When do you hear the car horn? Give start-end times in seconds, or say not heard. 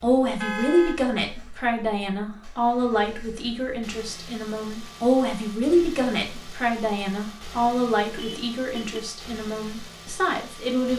0.4-1.4, 8.2-9.0.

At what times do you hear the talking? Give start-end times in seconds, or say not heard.
0.0-10.9.